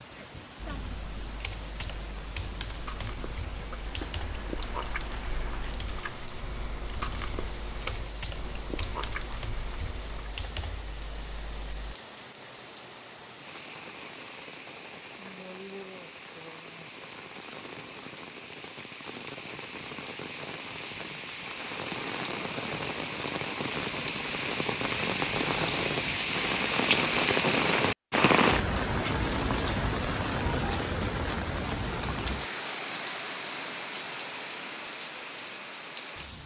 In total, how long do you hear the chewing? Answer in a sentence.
You can hear the chewing for 8 seconds altogether.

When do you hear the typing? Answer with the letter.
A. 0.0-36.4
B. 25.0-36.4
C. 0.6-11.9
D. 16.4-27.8
C.